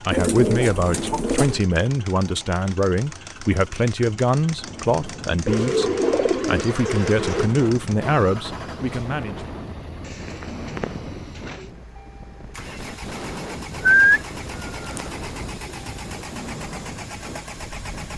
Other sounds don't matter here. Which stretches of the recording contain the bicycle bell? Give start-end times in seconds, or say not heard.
not heard.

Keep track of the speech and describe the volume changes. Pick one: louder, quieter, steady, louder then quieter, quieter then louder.
steady.